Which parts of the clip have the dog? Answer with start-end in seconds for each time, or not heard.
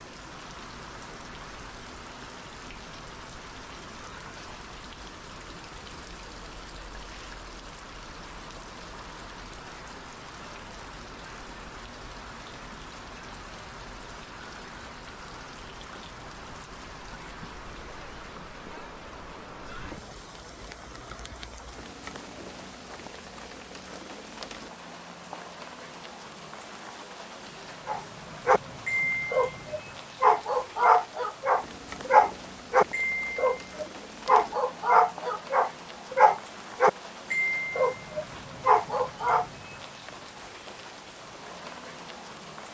27.9-39.5.